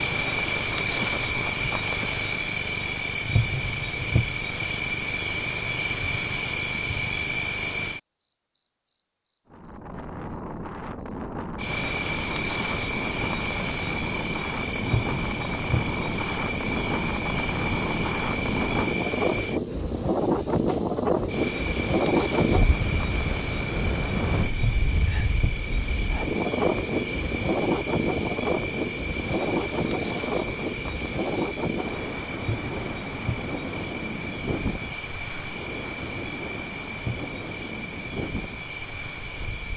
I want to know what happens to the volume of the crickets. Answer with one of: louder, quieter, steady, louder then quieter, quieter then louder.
quieter.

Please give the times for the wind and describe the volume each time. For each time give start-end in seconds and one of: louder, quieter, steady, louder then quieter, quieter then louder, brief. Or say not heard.
9.5-39.7 louder then quieter.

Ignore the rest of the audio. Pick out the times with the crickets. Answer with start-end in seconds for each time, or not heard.
0.0-39.7.